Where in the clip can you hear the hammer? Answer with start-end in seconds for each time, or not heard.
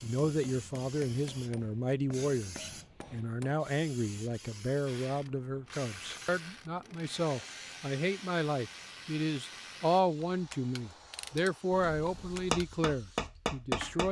0.0-3.5, 11.7-14.0.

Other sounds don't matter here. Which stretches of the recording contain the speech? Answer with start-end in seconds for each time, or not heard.
0.0-14.0.